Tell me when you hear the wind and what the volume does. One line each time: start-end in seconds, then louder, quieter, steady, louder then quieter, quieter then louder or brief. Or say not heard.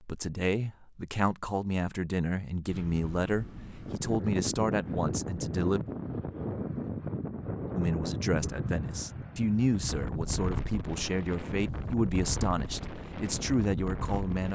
2.6-14.5 steady.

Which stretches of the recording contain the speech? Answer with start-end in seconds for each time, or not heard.
0.0-5.8, 7.8-14.5.